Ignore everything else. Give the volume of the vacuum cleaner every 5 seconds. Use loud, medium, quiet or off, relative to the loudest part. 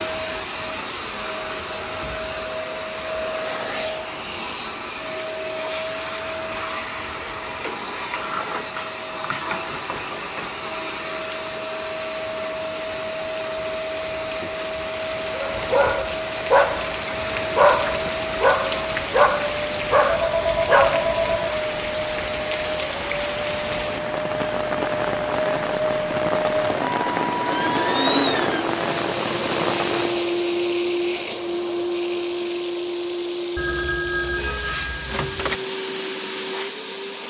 medium, medium, medium, medium, medium, loud, loud, medium.